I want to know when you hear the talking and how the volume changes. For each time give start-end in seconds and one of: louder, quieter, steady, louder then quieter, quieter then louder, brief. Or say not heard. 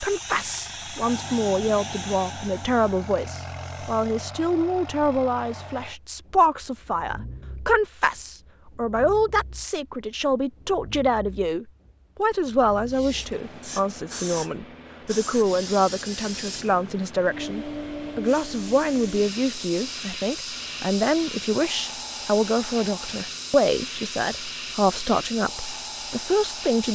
0.0-26.9 steady.